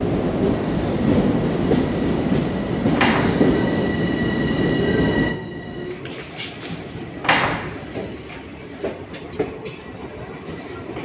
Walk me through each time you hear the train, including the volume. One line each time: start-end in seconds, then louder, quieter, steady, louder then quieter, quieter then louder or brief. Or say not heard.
0.0-10.9 quieter.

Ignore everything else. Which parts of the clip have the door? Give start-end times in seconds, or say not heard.
2.1-3.5, 6.2-7.8.